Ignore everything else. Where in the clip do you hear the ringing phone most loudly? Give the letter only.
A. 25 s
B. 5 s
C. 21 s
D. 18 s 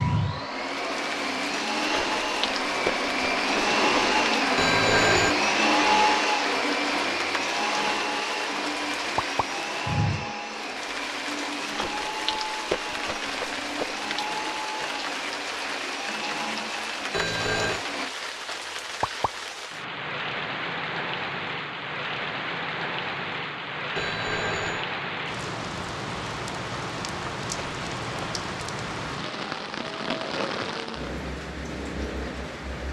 B.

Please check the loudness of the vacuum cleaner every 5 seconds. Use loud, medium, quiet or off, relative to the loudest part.
loud, loud, medium, medium, off, off, off.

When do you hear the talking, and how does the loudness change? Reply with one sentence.
The talking can't be heard in this clip.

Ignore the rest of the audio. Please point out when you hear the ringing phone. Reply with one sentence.
The ringing phone can be heard from 4.5 to 5.3 s, from 17.1 to 17.9 s and from 23.9 to 24.9 s.